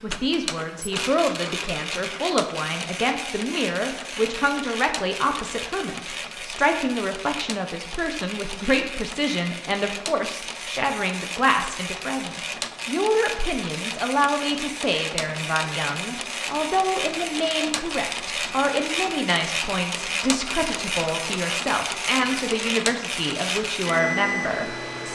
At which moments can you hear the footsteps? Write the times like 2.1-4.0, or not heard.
not heard.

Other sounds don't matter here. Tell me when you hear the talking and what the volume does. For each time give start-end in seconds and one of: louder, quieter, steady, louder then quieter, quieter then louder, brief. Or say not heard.
0.0-25.1 steady.